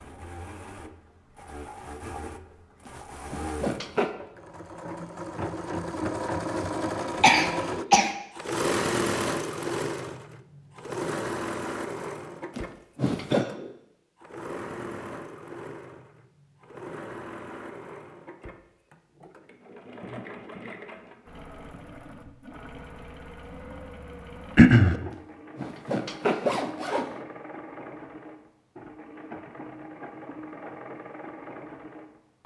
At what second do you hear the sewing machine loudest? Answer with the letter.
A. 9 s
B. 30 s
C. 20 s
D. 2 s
A.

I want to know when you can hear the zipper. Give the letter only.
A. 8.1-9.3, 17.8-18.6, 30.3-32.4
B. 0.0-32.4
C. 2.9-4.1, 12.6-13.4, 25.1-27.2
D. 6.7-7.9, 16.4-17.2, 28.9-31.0
C.